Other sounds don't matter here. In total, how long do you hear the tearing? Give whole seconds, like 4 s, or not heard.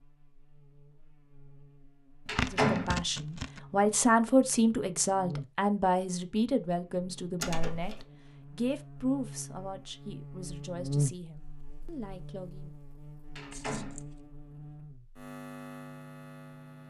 2 s.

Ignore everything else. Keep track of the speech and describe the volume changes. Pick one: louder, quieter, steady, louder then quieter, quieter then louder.
quieter.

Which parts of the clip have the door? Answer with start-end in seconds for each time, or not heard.
2.2-3.0, 7.4-8.0, 13.3-14.0.